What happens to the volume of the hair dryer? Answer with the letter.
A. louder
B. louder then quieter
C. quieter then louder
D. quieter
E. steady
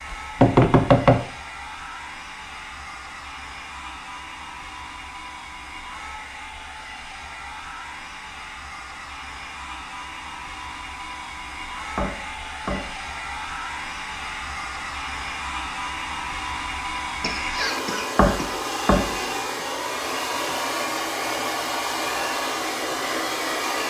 A.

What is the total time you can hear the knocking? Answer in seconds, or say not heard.
3 s.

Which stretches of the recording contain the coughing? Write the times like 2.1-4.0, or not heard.
17.2-18.6.